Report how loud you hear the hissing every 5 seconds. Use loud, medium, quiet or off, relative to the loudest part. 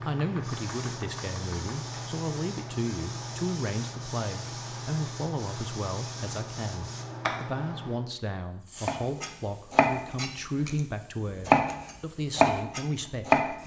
loud, loud, quiet.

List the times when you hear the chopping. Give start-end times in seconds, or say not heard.
0.0-1.8, 8.8-10.8, 11.4-13.4.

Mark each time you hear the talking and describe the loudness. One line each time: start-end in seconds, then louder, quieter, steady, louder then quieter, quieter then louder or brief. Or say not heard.
0.0-13.6 steady.